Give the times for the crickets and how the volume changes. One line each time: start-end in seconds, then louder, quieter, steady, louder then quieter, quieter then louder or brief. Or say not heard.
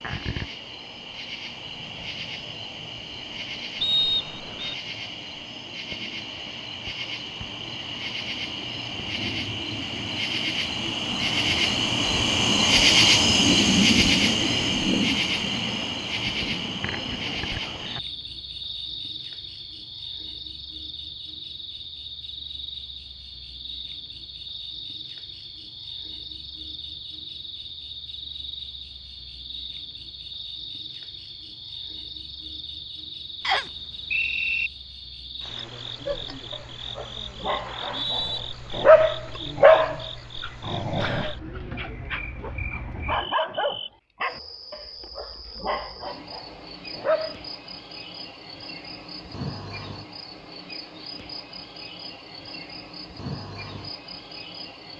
0.0-54.9 louder then quieter.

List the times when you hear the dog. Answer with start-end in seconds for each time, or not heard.
36.0-47.4.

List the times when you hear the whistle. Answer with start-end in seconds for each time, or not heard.
3.8-4.8, 33.4-34.7, 37.6-38.4.